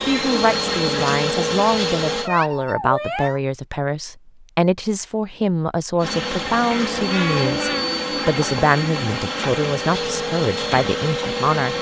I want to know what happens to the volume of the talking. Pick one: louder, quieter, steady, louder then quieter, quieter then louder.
steady.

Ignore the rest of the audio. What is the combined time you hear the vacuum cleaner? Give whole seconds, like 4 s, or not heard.
8 s.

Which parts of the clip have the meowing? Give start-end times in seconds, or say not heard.
2.2-3.4, 6.7-8.0.